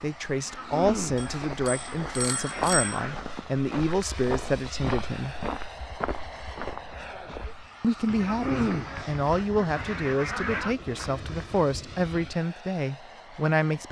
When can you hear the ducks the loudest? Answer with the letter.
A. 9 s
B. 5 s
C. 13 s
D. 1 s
A.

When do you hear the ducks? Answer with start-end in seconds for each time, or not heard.
0.5-3.1, 8.2-10.8.